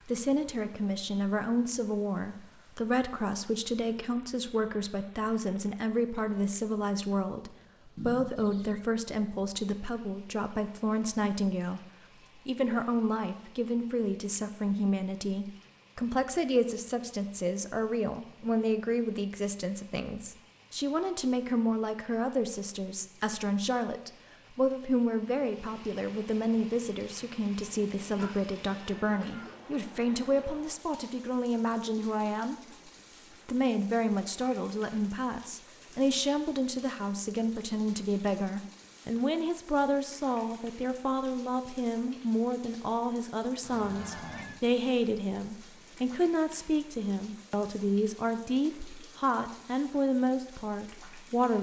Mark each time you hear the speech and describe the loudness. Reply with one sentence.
The speech can be heard from 0.1 to 32.5 s, at a steady volume; and from 33.5 to 51.5 s, at a steady volume.